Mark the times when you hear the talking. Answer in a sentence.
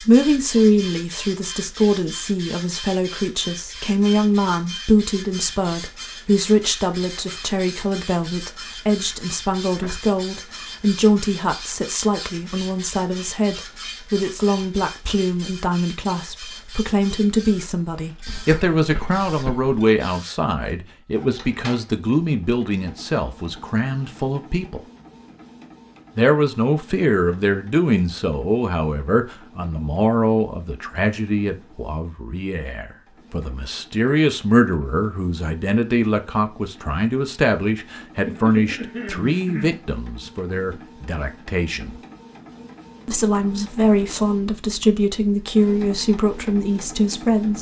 You can hear the talking from 0.0 to 24.8 s, from 26.1 to 42.0 s and from 43.0 to 47.5 s.